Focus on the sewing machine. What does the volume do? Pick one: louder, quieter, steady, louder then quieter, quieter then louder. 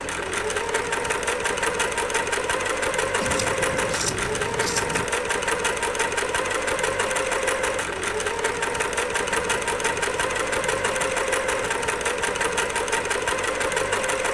steady.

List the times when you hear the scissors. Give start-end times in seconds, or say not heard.
3.2-5.0, 9.3-11.2.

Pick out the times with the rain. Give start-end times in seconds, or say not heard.
not heard.